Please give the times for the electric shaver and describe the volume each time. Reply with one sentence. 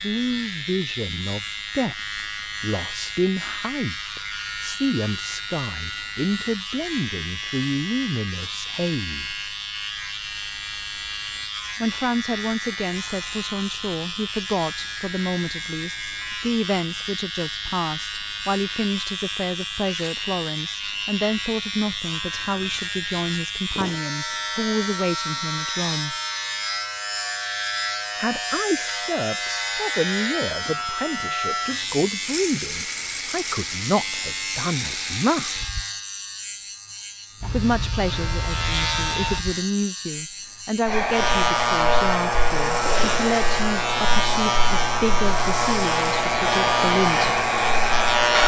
The electric shaver can be heard from 0.0 to 48.4 s, getting louder.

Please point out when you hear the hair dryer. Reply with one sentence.
You can hear the hair dryer from 40.9 to 48.4 s.